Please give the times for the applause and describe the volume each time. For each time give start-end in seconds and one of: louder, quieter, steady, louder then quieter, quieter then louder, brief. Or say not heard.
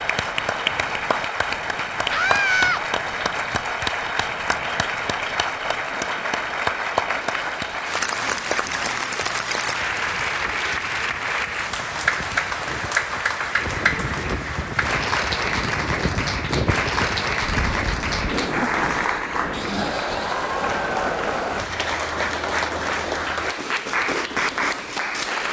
0.0-25.4 steady.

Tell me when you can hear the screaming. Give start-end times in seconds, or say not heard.
2.1-2.9.